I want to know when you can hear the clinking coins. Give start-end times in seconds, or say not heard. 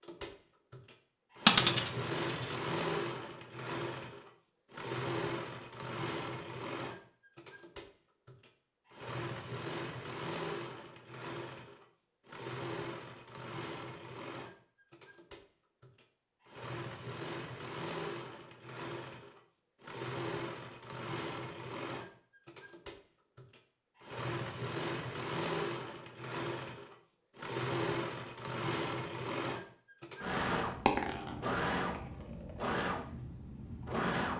1.4-2.5, 30.8-32.6.